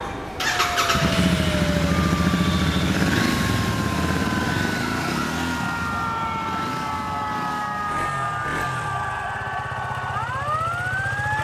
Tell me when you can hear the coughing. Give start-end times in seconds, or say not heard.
not heard.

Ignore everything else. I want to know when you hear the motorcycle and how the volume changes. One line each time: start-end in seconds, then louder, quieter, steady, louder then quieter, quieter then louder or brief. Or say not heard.
0.0-11.3 quieter.